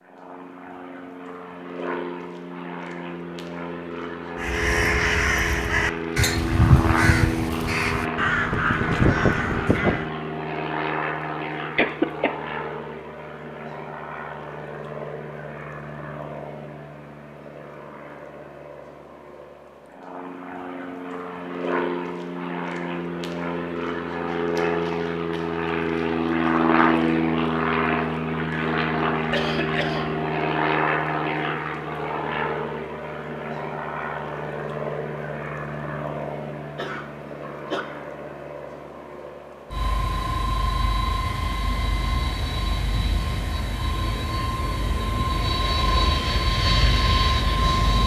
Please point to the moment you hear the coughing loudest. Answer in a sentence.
The loudest moment of the coughing is at 12 seconds.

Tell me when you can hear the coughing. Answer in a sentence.
The coughing can be heard from 11.8 to 12.3 s, from 29.3 to 30.1 s and from 36.8 to 37.9 s.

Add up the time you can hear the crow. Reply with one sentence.
You can hear the crow for 6 seconds altogether.